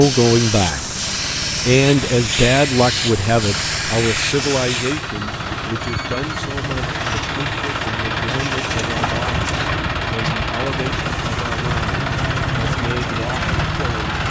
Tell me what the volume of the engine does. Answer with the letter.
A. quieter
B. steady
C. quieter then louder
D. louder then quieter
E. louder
E.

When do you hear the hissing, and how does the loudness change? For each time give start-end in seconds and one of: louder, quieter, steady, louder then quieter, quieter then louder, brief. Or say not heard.
0.0-5.0 steady.